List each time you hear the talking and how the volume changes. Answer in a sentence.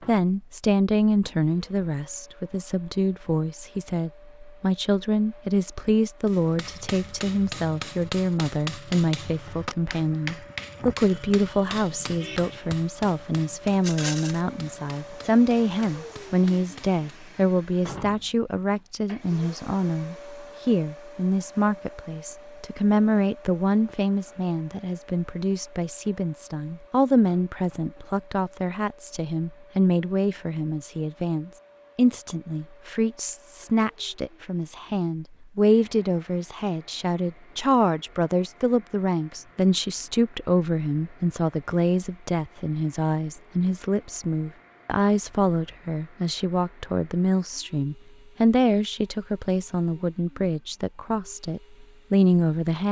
You can hear the talking from 0.1 to 52.8 s, at a steady volume.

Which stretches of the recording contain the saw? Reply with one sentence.
The saw can't be heard in this clip.